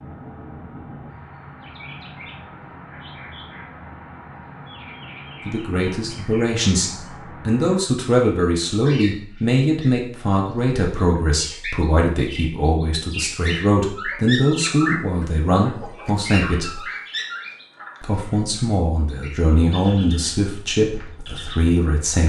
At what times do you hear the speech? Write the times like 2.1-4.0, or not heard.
5.5-16.8, 18.0-22.2.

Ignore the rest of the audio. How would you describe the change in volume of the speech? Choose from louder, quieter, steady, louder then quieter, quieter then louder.
steady.